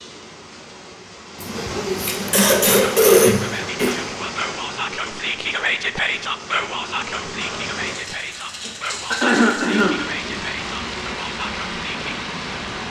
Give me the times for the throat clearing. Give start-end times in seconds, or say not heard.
1.4-4.0, 8.7-10.3.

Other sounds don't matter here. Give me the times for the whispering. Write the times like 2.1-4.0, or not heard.
2.7-12.2.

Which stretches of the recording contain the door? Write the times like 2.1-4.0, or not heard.
not heard.